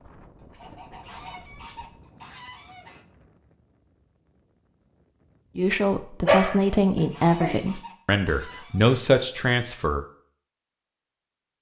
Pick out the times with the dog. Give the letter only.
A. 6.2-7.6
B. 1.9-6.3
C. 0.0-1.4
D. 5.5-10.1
A.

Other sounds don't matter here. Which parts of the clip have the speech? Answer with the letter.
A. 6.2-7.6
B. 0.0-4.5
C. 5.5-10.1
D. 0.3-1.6
C.